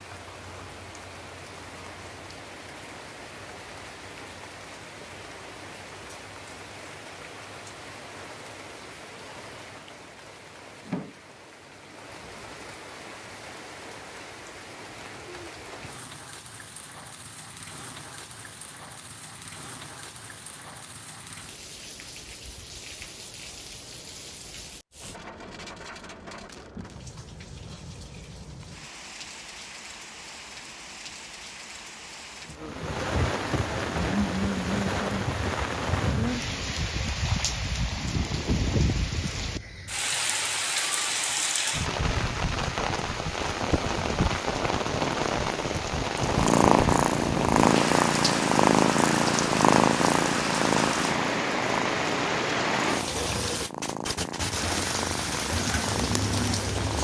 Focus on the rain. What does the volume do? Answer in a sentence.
The volume of the rain goes up.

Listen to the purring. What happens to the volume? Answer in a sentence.
The loudness of the purring goes down.